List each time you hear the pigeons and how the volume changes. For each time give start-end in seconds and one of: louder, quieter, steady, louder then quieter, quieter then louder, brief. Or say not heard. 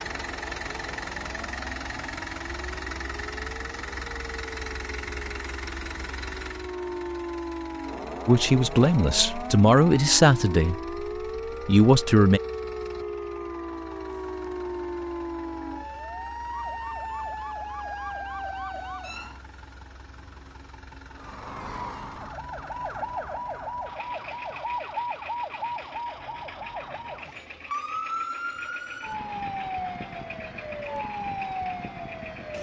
not heard.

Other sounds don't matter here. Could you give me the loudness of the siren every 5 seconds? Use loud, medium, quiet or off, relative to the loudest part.
medium, loud, loud, loud, loud, loud, loud.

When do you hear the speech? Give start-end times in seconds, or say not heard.
8.2-10.9, 11.7-12.4.